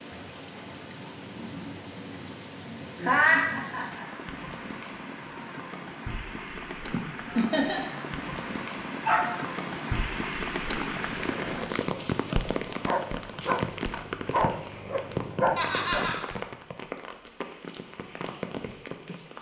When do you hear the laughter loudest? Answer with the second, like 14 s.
3 s.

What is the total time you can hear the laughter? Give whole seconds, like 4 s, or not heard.
3 s.